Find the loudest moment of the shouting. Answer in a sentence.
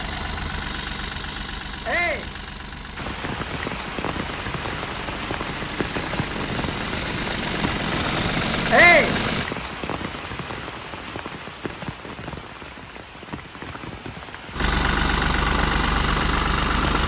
The loudest moment of the shouting is at 9 seconds.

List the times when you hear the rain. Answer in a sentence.
The rain can be heard from 3.0 to 17.0 s.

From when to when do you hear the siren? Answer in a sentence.
The siren can't be heard in this clip.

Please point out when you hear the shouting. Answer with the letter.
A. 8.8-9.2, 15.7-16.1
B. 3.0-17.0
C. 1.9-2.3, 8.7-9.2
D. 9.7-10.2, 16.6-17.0
C.